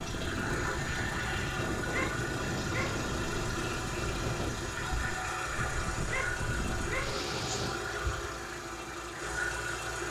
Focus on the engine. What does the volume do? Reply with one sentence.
The loudness of the engine stays about the same.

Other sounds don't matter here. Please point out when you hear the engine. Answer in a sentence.
The engine can be heard from 0.0 to 10.0 s.